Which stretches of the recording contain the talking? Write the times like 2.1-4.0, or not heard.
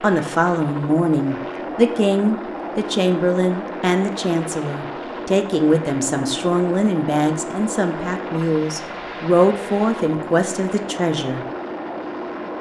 0.0-11.4.